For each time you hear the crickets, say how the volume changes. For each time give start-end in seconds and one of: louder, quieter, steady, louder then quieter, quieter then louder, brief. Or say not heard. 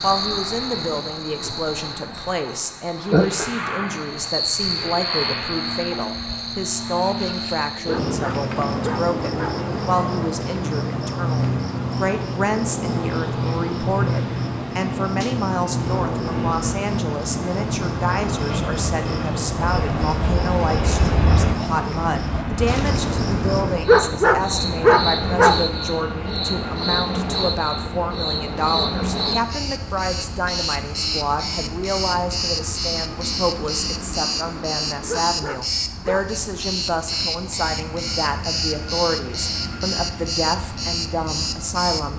0.0-42.1 steady.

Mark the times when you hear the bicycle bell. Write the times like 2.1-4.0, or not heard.
not heard.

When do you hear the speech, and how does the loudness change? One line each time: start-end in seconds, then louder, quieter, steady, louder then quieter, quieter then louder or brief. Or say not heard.
0.0-42.1 steady.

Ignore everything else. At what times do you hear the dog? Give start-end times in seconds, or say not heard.
7.8-9.6, 23.9-25.6, 35.0-36.2.